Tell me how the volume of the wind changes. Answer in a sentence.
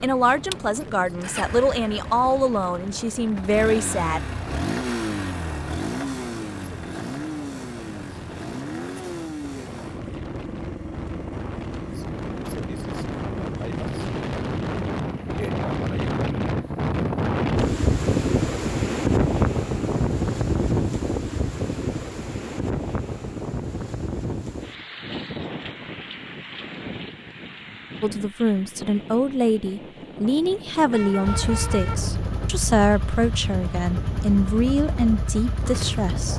The volume of the wind goes up, then down.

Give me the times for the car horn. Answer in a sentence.
The car horn can be heard from 30.9 to 31.9 s.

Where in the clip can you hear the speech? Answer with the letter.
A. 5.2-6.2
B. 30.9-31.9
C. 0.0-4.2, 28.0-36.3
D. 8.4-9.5
C.